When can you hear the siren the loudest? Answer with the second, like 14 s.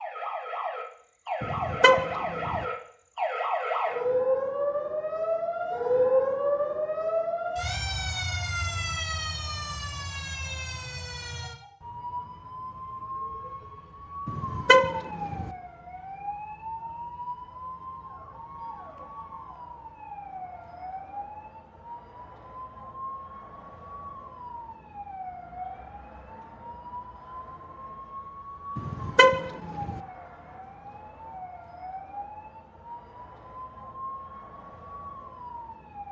6 s.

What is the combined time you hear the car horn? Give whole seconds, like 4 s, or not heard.
4 s.